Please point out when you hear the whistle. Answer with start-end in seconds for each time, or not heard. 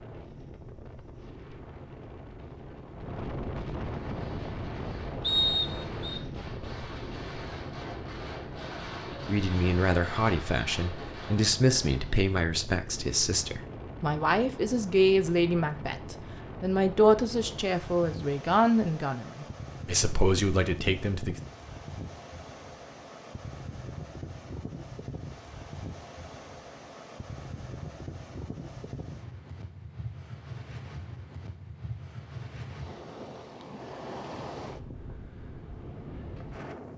5.2-6.2.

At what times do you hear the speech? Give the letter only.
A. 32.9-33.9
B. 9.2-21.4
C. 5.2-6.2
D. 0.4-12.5
B.